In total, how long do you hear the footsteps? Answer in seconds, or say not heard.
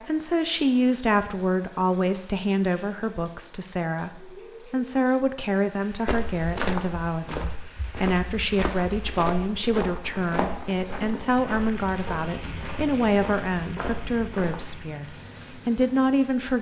9 s.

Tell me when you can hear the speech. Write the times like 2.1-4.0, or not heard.
0.1-16.5.